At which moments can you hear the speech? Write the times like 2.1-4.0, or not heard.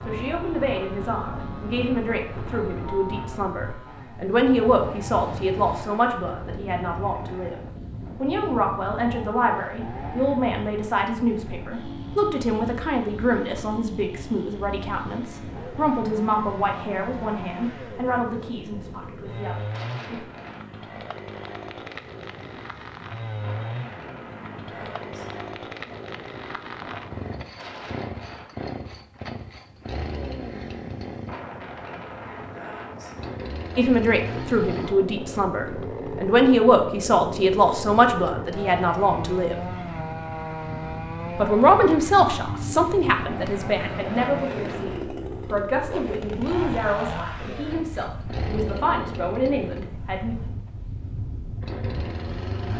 0.1-7.5, 8.2-20.2, 33.8-39.5, 41.4-50.4.